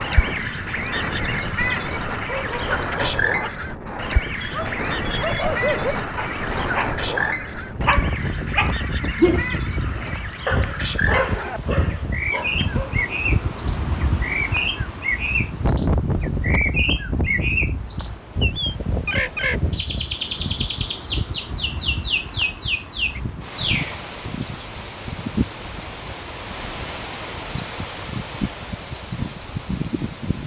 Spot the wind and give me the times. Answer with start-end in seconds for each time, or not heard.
0.0-30.4.